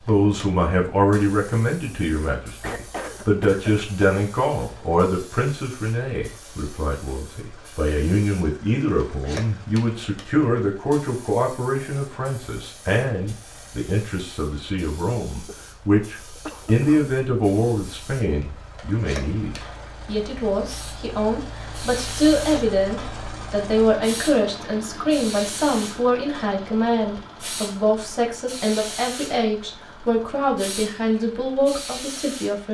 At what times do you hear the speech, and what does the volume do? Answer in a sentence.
You can hear the speech from 0.1 to 32.6 s, at a steady volume.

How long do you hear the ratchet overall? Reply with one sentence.
The ratchet can't be heard in this clip.